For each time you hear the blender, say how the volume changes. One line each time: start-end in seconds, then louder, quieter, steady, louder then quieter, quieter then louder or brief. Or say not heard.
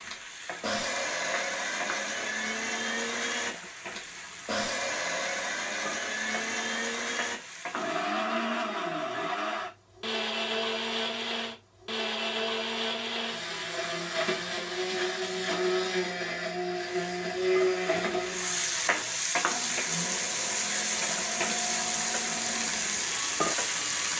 0.0-24.1 quieter.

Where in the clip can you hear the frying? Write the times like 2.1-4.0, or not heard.
0.0-8.1, 16.7-24.1.